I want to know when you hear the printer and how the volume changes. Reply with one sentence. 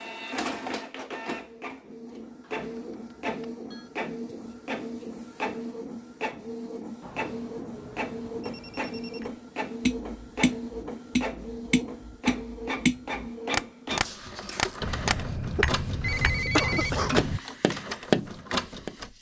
The printer can be heard from 0.0 to 19.1 s, at a steady volume.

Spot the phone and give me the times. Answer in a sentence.
You can hear the phone from 2.4 to 3.9 s, from 7.0 to 9.3 s and from 14.8 to 17.4 s.